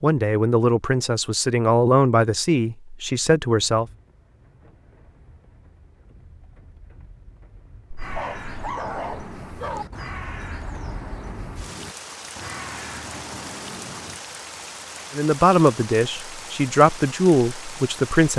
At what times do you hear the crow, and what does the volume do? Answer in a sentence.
The crow can be heard from 8.0 to 14.2 s, at a steady volume.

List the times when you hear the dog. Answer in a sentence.
You can hear the dog from 8.0 to 9.8 s.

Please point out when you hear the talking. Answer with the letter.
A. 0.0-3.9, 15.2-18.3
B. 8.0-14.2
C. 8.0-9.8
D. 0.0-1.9
A.